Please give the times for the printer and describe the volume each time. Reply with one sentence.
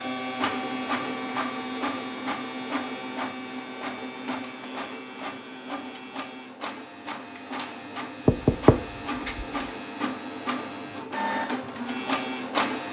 The printer can be heard from 0.0 to 12.8 s, getting quieter then louder.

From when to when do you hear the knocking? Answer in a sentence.
The knocking can be heard from 8.2 to 9.4 s.